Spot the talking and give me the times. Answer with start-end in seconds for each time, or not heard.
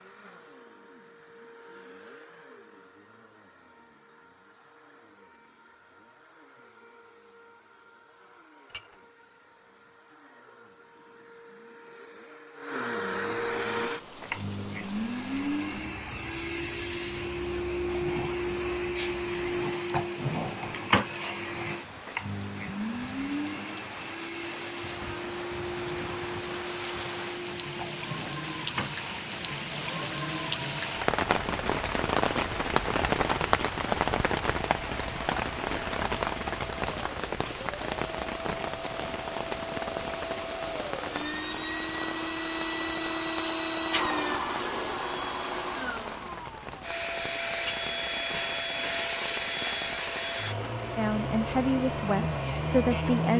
51.0-53.3.